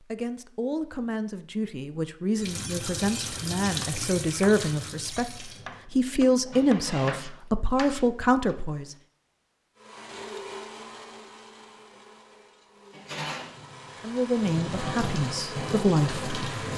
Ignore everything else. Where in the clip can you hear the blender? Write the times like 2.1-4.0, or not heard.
9.8-16.7.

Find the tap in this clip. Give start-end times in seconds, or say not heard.
2.4-7.3, 12.9-16.7.